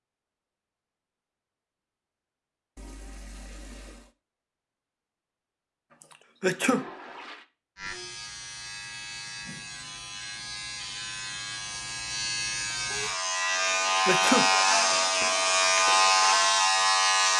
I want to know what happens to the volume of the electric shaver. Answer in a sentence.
The volume of the electric shaver goes up.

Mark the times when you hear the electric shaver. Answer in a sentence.
The electric shaver can be heard from 7.8 to 17.3 s.